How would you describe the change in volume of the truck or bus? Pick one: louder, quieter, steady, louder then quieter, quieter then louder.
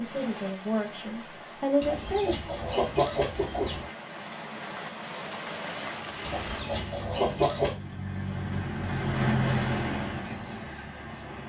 louder then quieter.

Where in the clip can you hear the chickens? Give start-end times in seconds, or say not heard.
1.8-3.9, 6.2-7.8.